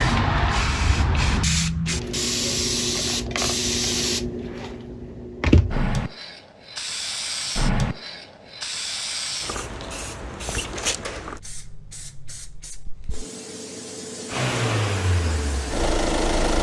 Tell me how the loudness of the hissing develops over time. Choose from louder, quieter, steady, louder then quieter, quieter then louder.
quieter.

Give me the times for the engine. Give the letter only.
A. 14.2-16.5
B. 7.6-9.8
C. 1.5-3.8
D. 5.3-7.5
A.